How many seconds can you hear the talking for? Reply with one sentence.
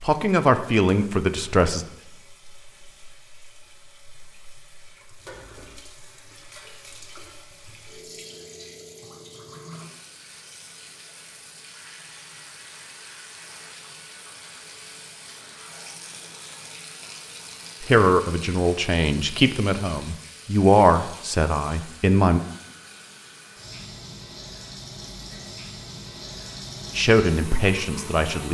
The talking can be heard for 8 seconds in total.